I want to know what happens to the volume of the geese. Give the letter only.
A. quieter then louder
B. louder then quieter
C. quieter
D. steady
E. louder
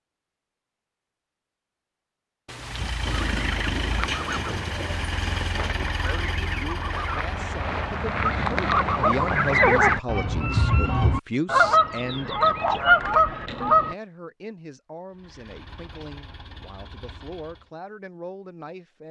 E.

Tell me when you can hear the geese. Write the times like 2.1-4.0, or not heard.
3.0-13.9.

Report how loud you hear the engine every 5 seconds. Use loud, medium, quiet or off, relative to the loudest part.
loud, loud, off, quiet.